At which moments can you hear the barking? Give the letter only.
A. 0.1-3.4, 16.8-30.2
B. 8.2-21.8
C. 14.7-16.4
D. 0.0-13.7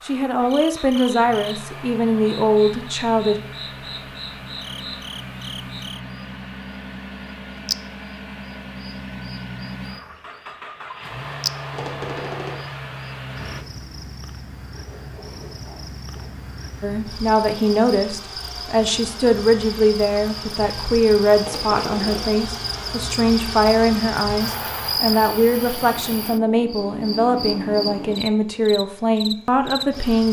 C.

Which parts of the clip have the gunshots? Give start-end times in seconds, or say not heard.
11.7-12.7, 21.4-22.3.